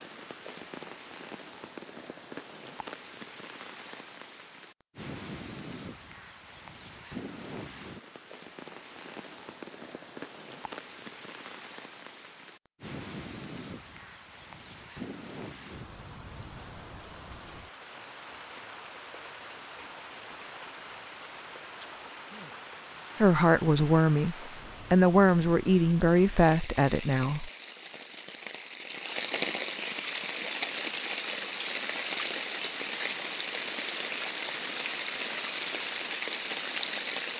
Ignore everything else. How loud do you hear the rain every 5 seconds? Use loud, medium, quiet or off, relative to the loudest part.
medium, medium, medium, medium, medium, medium, loud, loud.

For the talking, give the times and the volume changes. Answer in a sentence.
You can hear the talking from 23.2 to 27.5 s, at a steady volume.